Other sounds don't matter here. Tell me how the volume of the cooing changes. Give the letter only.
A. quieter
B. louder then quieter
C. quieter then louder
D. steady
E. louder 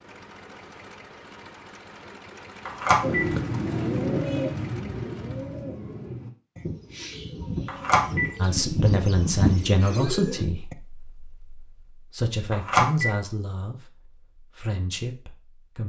C.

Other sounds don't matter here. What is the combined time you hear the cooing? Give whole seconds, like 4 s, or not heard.
8 s.